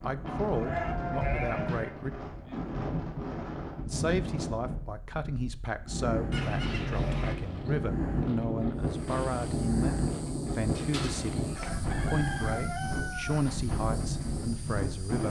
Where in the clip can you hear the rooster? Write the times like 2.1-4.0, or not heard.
11.6-13.4.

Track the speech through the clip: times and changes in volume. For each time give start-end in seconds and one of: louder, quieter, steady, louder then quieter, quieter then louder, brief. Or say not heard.
0.0-2.1 brief
3.9-15.2 steady.